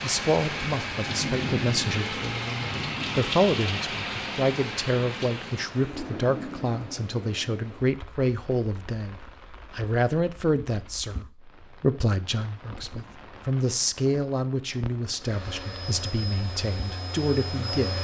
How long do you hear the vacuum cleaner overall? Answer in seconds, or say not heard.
3 s.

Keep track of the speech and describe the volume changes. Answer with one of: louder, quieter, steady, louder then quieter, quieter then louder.
steady.